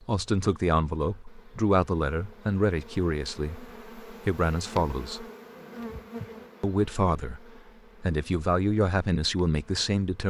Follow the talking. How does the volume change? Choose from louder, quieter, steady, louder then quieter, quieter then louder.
steady.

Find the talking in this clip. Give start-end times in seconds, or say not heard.
0.0-5.2, 6.6-10.2.